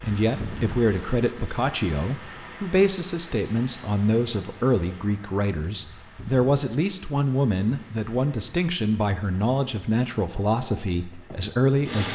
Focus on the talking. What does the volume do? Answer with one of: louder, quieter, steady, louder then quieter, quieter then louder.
steady.